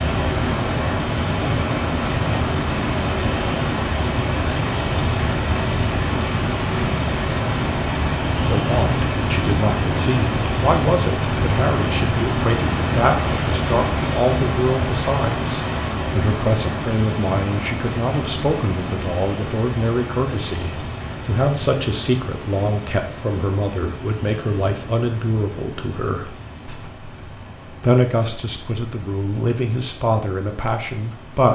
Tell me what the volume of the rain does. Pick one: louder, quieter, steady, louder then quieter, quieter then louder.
quieter.